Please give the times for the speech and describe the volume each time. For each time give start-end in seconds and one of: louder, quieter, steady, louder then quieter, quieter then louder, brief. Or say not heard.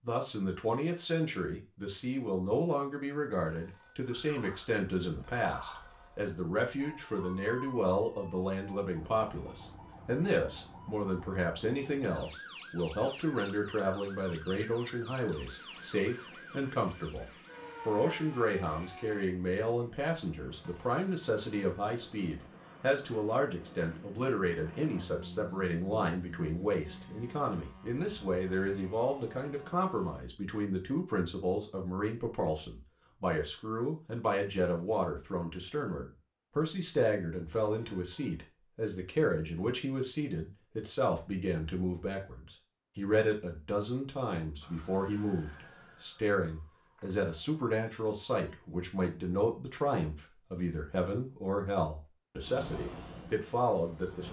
0.0-54.2 steady.